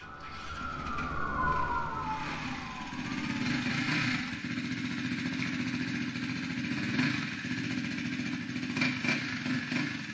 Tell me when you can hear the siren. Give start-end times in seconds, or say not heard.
0.0-4.5.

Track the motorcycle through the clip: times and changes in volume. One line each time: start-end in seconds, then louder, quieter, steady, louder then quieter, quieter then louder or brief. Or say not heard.
0.0-10.0 louder.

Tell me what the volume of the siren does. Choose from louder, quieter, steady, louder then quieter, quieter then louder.
louder then quieter.